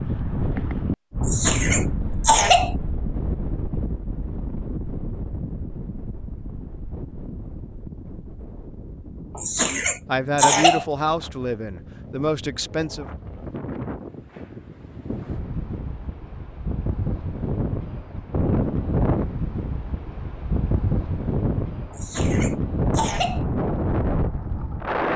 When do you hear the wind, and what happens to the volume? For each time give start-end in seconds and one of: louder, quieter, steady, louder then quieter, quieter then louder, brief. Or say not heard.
0.0-25.1 quieter then louder.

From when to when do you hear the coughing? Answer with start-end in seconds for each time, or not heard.
1.2-2.8, 9.3-10.8, 21.9-23.4.